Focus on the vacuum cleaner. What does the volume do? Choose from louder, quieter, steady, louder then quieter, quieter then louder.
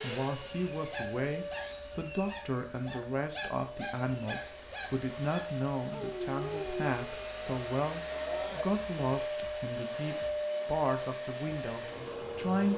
louder.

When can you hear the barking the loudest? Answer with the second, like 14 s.
7 s.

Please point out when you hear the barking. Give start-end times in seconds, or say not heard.
0.4-7.2.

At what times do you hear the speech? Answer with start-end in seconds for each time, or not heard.
0.0-12.7.